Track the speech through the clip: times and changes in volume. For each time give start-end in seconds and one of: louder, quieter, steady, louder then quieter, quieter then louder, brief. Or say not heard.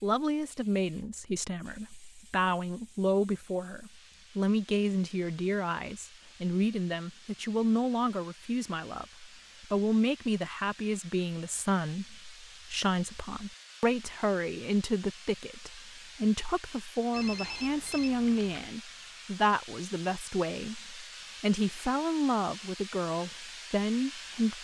0.0-24.6 steady.